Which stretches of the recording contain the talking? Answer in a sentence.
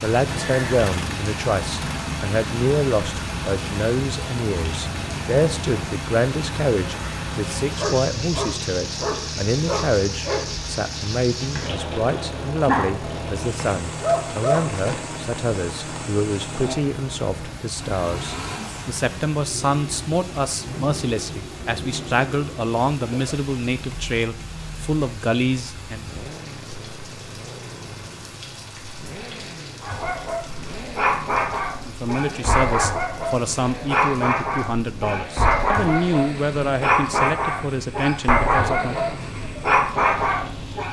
The talking can be heard from 0.0 to 26.1 s and from 31.9 to 39.1 s.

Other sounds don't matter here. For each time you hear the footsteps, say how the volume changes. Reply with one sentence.
The footsteps can't be heard in this clip.